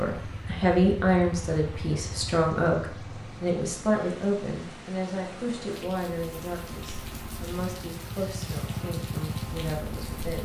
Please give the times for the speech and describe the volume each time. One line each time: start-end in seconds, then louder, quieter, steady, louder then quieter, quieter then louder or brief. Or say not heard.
0.0-10.4 quieter.